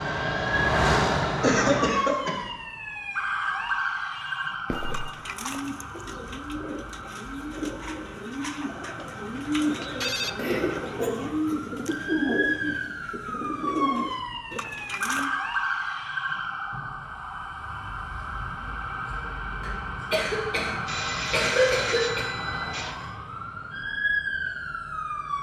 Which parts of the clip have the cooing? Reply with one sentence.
The cooing can be heard from 4.8 to 15.3 s.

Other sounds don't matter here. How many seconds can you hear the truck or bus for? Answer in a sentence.
The truck or bus can be heard for 2 seconds in total.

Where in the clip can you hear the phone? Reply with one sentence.
You can hear the phone from 4.2 to 5.2 s, from 9.0 to 10.3 s and from 20.9 to 23.1 s.